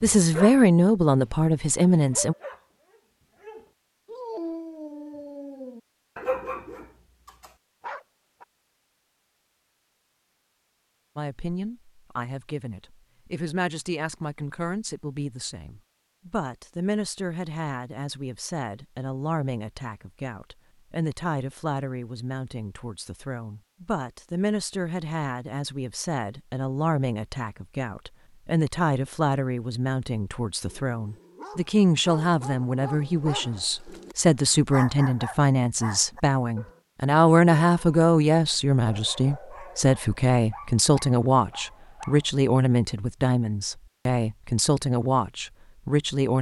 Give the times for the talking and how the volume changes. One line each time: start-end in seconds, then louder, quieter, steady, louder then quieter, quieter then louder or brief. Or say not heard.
0.0-2.4 brief
11.2-46.3 louder.